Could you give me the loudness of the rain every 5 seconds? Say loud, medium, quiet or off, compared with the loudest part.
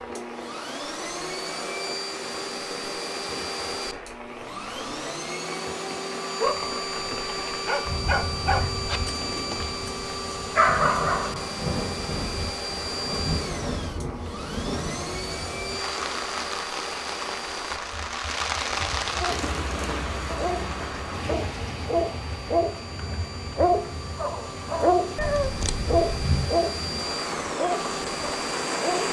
medium, medium, loud, loud, medium, loud.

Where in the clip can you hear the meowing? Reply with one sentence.
The meowing can be heard from 25.1 to 26.3 s.